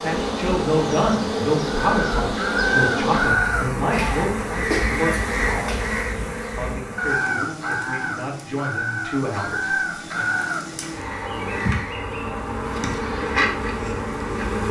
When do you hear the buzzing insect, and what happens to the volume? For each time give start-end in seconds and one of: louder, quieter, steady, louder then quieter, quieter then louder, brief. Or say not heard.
0.0-14.6 quieter then louder.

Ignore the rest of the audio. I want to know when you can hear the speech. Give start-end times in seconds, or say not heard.
0.0-5.8, 6.5-10.4.